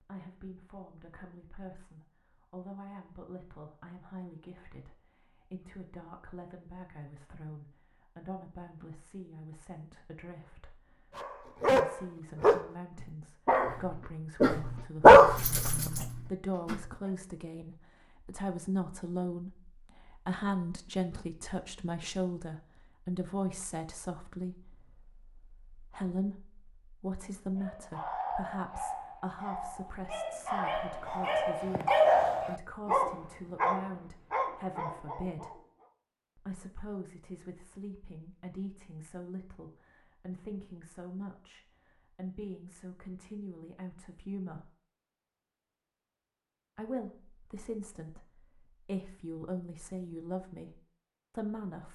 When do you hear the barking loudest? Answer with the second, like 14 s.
15 s.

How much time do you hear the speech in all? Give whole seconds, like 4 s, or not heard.
49 s.